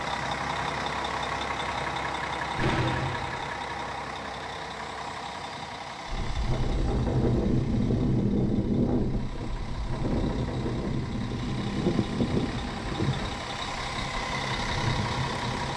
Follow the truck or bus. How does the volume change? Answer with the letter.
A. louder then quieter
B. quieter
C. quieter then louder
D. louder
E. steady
C.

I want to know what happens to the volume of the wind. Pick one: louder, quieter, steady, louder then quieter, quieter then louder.
quieter.